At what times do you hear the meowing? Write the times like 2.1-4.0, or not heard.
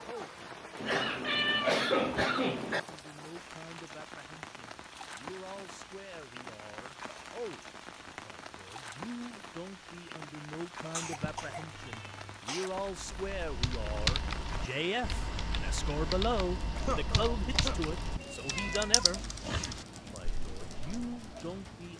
0.8-2.8, 11.0-12.4, 18.1-19.9.